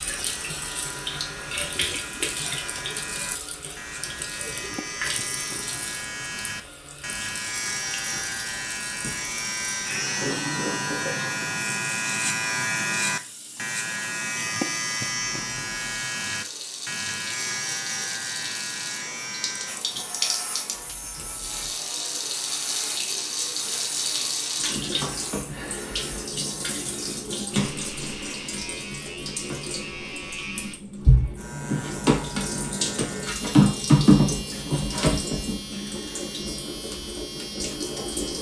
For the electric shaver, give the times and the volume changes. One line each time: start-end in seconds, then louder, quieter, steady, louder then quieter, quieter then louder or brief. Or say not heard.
0.0-38.3 louder then quieter.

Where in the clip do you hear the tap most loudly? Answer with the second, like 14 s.
34 s.